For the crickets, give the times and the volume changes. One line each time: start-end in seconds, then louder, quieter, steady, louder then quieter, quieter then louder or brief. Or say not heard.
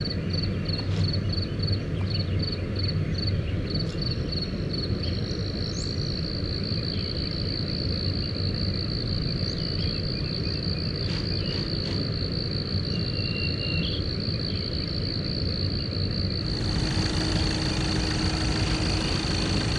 0.0-19.7 steady.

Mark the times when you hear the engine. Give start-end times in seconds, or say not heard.
16.4-19.7.